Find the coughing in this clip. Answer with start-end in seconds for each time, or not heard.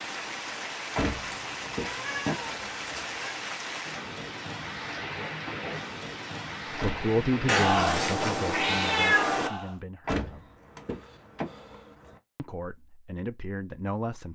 not heard.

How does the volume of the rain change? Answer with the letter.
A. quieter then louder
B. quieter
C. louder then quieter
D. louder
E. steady
D.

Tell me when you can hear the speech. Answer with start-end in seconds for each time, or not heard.
6.8-10.4, 12.3-14.3.